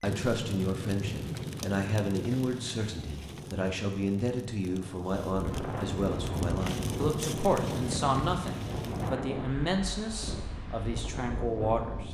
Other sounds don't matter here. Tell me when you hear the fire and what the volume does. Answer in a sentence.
The fire can be heard from 0.0 to 9.2 s, getting quieter then louder.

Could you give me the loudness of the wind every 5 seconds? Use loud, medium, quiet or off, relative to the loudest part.
off, loud, loud.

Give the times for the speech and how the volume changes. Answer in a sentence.
The speech can be heard from 0.0 to 12.0 s, at a steady volume.